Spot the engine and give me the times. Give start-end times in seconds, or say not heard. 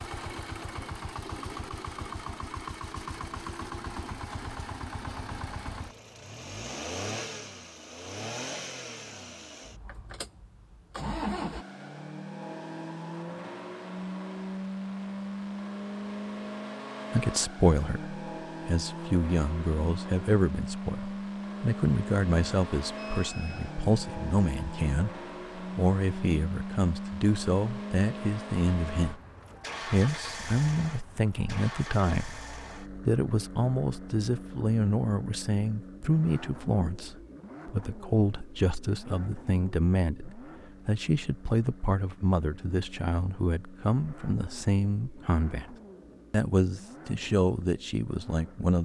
0.0-48.8.